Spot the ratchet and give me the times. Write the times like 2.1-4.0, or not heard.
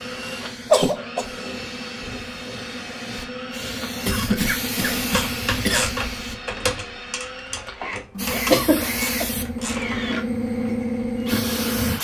5.0-10.2.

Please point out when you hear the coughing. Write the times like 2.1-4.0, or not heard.
0.2-1.2, 4.0-5.9, 8.2-9.2.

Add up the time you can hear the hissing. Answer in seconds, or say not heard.
10 s.